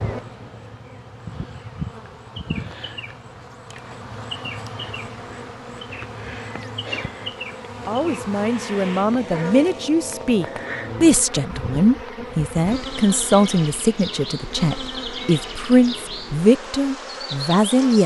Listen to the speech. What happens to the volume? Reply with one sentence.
The loudness of the speech stays about the same.